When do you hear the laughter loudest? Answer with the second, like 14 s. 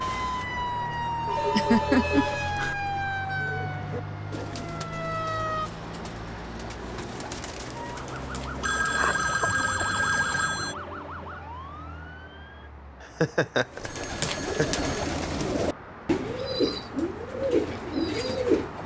2 s.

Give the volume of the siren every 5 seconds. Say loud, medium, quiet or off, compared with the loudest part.
loud, loud, medium, off.